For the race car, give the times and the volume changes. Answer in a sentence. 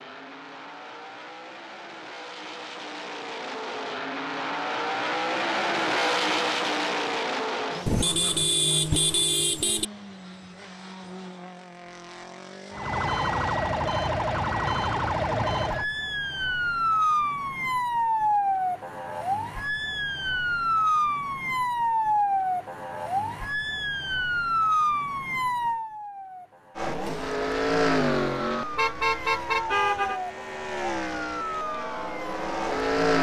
The race car can be heard from 0.0 to 13.7 s, getting louder then quieter; and from 26.8 to 33.1 s, getting quieter then louder.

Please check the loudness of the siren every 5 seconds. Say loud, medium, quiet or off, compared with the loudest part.
off, off, loud, loud, loud, medium, medium.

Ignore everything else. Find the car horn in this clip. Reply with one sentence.
You can hear the car horn from 7.8 to 9.8 s and from 28.8 to 30.2 s.